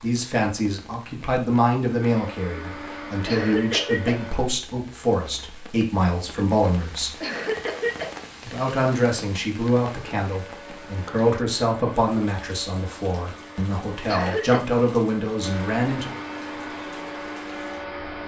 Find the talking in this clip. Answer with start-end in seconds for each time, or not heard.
0.0-7.2, 8.4-16.1.